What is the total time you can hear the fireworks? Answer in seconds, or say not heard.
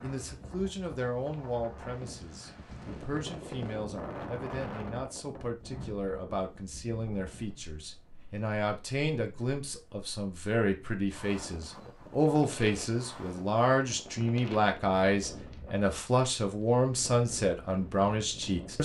not heard.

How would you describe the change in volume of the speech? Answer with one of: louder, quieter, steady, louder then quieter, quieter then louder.
louder.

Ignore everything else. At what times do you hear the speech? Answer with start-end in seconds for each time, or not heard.
0.0-18.8.